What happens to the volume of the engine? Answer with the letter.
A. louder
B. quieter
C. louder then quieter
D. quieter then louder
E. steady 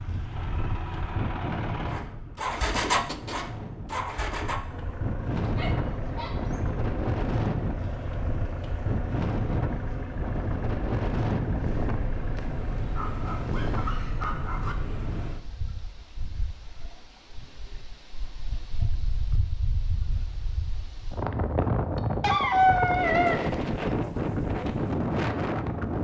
B.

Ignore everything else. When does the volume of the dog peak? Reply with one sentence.
The volume of the dog peaks at 23 seconds.